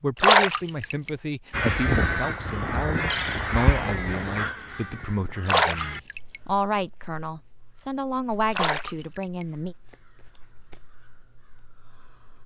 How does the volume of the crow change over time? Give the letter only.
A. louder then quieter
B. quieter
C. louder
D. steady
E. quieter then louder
B.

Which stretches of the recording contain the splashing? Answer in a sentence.
You can hear the splashing from 0.2 to 1.1 s, from 5.5 to 6.4 s and from 8.5 to 9.4 s.